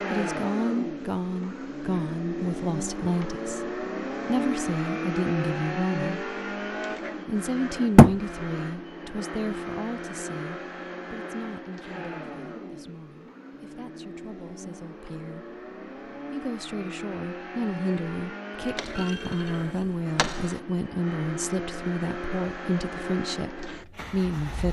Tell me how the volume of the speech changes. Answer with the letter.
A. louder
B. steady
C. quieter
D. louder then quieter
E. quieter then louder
E.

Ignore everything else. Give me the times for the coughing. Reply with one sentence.
The coughing can't be heard in this clip.